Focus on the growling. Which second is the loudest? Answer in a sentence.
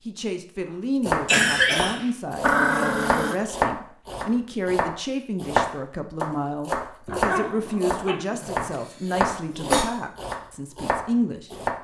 The volume of the growling peaks at 3 seconds.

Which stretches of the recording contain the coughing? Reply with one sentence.
The coughing can be heard from 1.2 to 1.9 s and from 8.7 to 9.8 s.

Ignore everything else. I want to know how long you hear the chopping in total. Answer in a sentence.
You can hear the chopping for 11 seconds altogether.